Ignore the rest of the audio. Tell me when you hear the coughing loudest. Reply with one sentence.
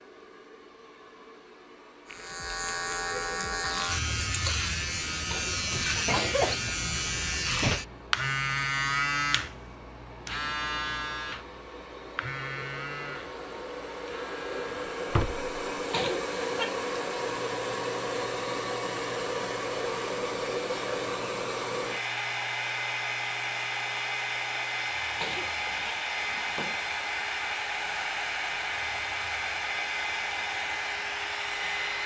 The loudest moment of the coughing is at 6 seconds.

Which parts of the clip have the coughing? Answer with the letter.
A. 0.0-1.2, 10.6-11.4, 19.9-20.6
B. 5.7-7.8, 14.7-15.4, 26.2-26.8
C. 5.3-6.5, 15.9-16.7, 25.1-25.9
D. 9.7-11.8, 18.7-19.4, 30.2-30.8
C.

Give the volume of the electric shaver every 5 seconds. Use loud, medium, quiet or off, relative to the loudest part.
loud, loud, medium, quiet, quiet, quiet, quiet.